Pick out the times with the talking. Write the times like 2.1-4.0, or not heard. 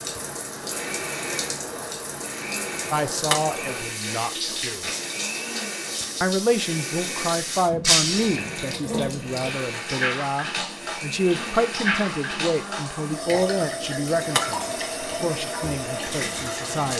2.9-4.9, 6.2-16.9.